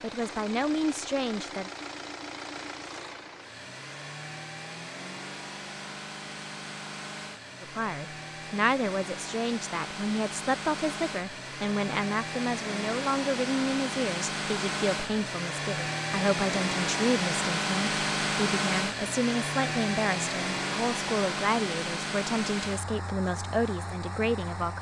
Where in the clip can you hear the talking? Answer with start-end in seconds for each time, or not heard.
0.0-1.7, 7.6-24.7.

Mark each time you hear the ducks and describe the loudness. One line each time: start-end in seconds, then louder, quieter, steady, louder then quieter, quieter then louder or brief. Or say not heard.
not heard.